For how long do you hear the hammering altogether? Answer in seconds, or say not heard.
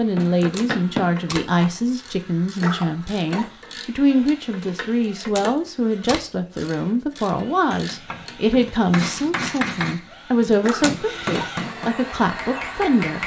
7 s.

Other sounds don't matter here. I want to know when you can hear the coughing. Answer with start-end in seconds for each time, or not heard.
2.5-3.5, 10.6-11.5.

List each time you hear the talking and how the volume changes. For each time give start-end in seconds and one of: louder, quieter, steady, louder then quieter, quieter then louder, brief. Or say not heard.
0.0-13.2 steady.